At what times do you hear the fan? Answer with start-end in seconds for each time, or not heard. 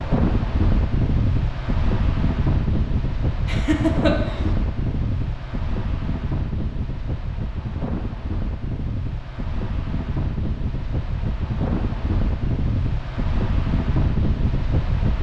0.0-15.1.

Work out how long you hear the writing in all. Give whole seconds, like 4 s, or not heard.
not heard.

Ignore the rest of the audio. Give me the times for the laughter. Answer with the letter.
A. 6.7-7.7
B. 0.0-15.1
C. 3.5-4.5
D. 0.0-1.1
C.